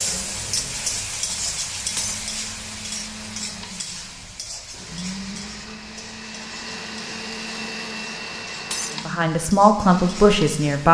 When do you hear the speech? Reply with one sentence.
The speech can be heard from 9.1 to 10.8 s.